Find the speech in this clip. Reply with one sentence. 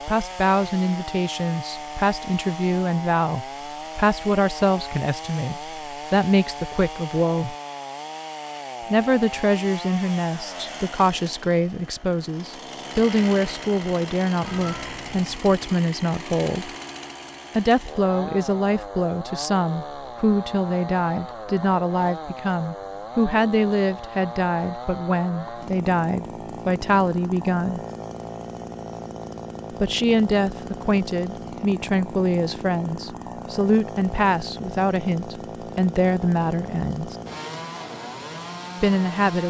You can hear the speech from 0.1 to 7.5 s, from 8.9 to 16.7 s, from 17.5 to 27.8 s, from 29.8 to 37.1 s and from 38.8 to 39.4 s.